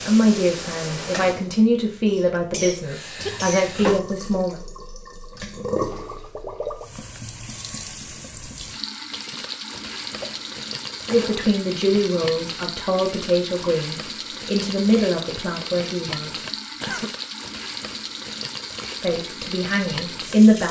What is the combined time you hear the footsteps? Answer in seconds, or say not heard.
not heard.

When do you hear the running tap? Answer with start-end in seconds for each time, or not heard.
0.0-20.6.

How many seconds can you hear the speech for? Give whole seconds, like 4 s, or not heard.
12 s.